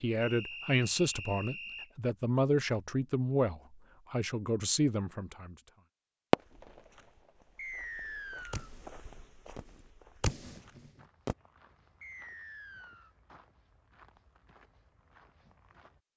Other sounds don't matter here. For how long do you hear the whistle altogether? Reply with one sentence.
The whistle can be heard for 4 seconds in total.